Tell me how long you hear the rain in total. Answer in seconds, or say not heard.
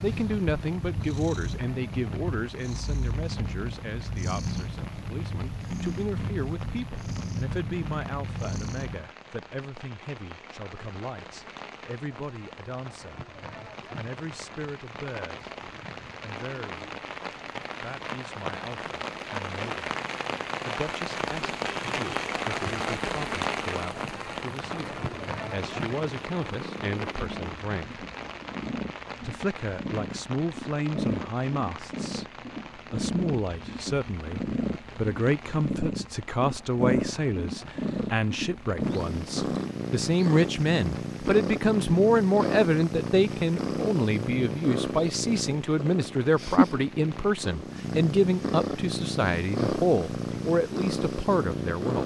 52 s.